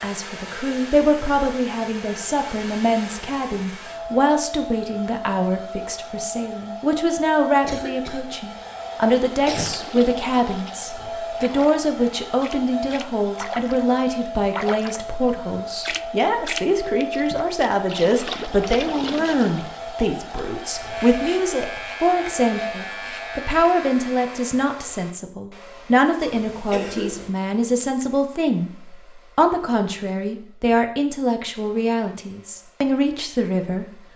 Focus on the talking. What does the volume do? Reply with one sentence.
The volume of the talking stays about the same.